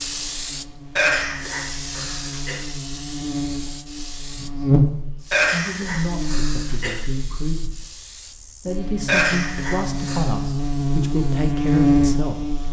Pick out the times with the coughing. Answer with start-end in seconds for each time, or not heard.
0.9-2.6, 5.3-7.0, 9.1-10.3.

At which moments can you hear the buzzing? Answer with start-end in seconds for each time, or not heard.
0.0-12.6.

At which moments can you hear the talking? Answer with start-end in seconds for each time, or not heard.
4.3-4.8, 5.5-12.6.